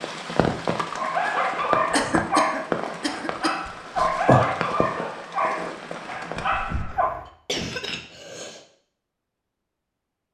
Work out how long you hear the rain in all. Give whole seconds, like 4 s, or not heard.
7 s.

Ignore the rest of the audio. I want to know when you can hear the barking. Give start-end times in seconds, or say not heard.
0.9-7.1.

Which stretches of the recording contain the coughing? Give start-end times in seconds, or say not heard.
1.9-3.5, 7.2-8.7.